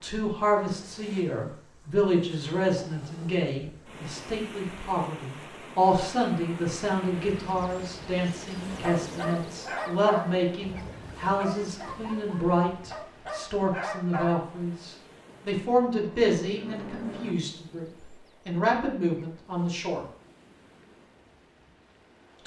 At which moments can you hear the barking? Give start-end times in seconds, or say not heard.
8.7-14.4.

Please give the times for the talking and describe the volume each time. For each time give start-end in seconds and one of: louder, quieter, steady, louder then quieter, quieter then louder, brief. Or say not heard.
0.0-20.1 steady.